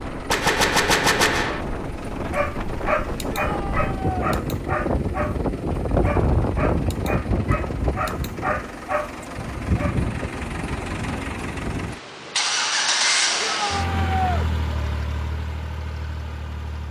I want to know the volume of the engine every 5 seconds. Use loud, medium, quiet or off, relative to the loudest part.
medium, medium, loud, medium.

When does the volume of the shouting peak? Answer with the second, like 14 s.
14 s.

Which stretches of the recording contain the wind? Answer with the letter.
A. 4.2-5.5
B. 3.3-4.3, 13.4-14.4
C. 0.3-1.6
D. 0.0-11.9
D.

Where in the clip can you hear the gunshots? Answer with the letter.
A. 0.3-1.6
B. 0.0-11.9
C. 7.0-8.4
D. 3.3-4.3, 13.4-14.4
A.